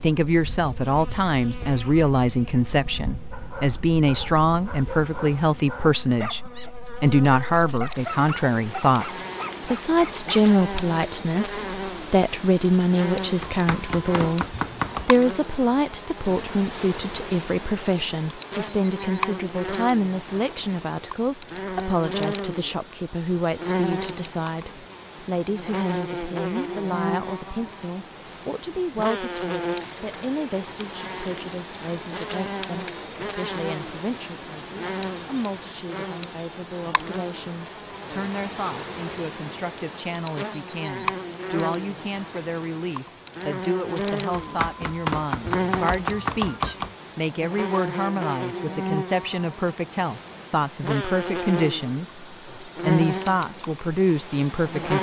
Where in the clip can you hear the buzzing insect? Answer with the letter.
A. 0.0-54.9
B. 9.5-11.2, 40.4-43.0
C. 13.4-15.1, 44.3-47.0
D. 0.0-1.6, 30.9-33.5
A.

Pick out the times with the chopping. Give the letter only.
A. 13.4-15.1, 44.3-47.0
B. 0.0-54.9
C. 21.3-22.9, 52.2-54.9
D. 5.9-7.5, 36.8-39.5
A.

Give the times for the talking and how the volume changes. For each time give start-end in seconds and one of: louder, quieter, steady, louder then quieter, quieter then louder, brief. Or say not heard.
0.0-54.9 quieter then louder.